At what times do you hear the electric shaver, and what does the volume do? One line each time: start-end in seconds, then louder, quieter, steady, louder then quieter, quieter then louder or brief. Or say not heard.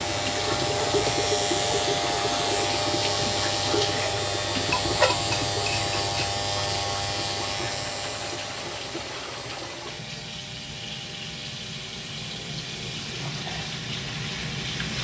0.0-14.9 quieter.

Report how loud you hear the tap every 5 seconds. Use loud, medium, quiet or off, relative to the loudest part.
loud, loud, medium.